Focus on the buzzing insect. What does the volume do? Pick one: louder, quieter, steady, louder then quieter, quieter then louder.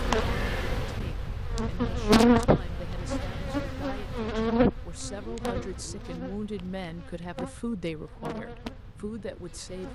quieter.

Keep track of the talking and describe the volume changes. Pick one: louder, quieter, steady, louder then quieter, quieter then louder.
louder.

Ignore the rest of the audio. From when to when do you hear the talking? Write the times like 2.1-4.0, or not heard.
0.1-9.9.